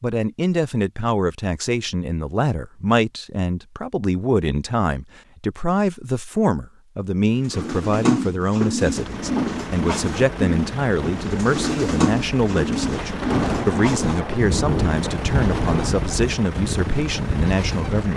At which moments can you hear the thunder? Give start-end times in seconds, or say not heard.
12.7-15.9.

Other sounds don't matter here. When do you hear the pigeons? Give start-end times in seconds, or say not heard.
7.3-18.1.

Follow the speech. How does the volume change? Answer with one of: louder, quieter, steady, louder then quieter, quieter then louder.
steady.